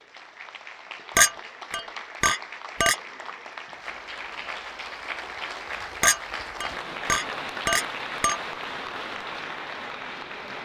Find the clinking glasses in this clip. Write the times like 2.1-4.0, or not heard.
1.1-3.0, 6.0-8.4.